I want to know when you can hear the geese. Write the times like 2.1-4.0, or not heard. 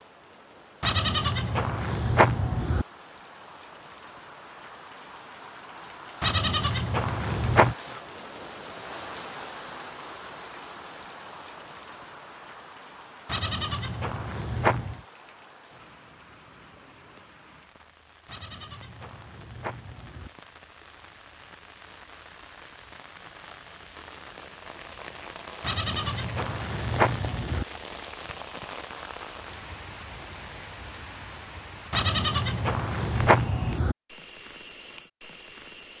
not heard.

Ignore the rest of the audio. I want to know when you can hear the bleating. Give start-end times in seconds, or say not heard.
0.8-2.9, 6.2-7.8, 13.2-15.0, 18.2-20.3, 25.6-27.6, 31.9-34.0.